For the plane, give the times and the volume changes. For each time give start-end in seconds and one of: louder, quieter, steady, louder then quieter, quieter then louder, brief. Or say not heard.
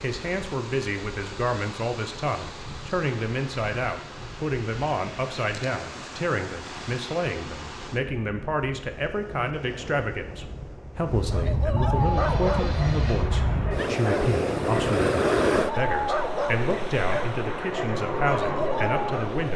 11.9-19.5 louder.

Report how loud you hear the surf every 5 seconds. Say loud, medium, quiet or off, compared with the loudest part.
medium, medium, loud, loud.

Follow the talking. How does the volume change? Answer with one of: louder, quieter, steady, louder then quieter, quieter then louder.
steady.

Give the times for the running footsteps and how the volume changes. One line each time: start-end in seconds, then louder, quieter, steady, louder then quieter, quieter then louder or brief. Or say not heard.
not heard.